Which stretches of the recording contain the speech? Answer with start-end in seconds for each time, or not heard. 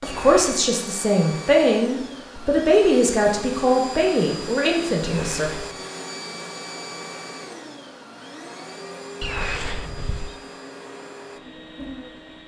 0.0-5.5.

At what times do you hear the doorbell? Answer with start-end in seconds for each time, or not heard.
not heard.